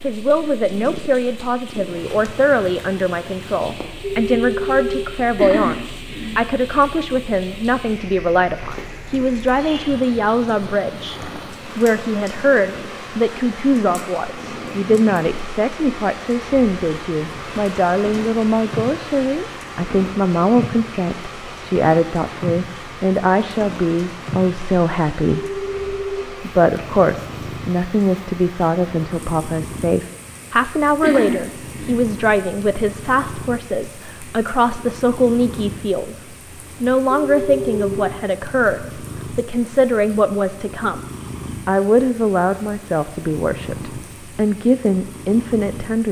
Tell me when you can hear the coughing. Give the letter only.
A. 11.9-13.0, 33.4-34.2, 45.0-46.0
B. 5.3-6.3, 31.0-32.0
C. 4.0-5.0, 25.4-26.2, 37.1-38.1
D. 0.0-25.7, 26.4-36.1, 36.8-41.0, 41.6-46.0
B.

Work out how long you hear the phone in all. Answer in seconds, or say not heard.
3 s.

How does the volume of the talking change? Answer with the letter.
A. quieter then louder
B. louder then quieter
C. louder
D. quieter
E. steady
E.